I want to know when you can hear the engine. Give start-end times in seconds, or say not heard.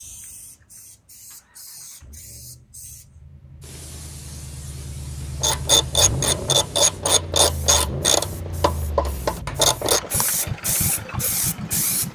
0.0-12.0.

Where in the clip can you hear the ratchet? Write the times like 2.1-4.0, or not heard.
5.4-10.9.